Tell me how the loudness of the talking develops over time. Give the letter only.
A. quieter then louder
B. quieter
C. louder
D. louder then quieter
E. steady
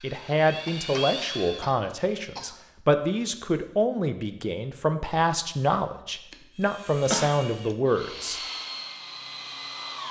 E.